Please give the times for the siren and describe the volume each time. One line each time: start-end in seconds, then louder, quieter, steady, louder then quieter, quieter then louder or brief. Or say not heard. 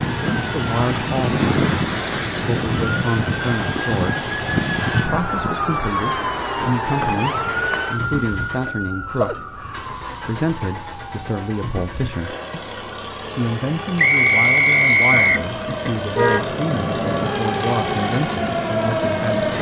0.0-19.5 quieter then louder.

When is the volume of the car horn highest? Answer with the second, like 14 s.
16 s.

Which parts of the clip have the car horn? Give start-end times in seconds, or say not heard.
15.1-16.5.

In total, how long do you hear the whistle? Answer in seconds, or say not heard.
2 s.